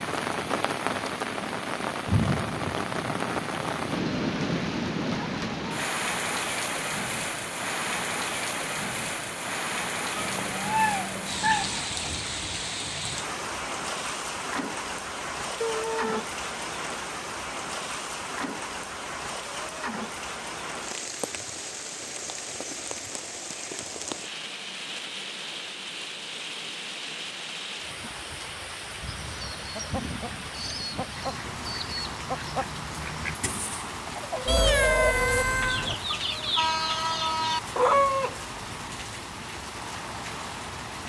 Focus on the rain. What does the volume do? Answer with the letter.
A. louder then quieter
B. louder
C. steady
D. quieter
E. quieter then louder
D.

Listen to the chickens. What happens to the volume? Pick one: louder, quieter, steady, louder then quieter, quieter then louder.
louder.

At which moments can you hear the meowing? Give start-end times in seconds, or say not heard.
10.2-11.8, 15.6-16.2, 34.5-36.0.